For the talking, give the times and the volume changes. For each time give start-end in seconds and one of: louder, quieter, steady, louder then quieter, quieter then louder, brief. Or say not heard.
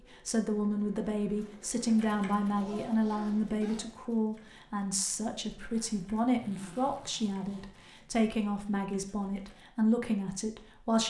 0.1-11.0 steady.